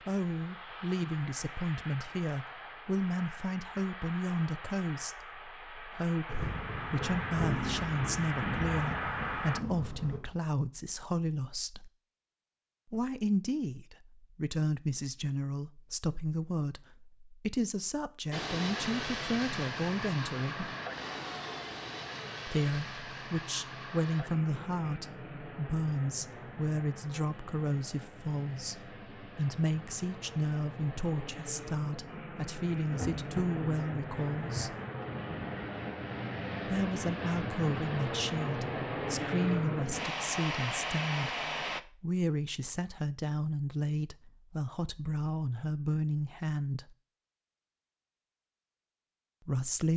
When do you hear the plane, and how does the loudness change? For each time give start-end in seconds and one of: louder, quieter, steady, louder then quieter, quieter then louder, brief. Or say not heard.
0.0-9.6 louder
18.3-41.8 quieter then louder.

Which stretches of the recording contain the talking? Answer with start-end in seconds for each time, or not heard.
0.1-11.9, 12.9-20.7, 22.4-34.8, 36.6-47.0, 49.5-49.9.